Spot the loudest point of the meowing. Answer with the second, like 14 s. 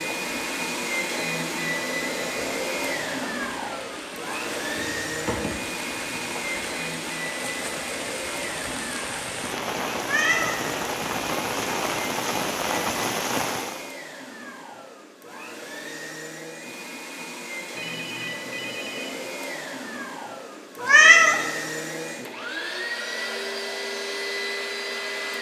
21 s.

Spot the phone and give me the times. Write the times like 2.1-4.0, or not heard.
17.7-19.4.